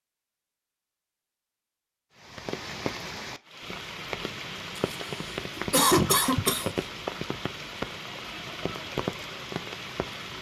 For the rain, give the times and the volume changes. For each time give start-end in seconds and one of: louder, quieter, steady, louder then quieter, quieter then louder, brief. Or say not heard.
2.1-10.3 steady.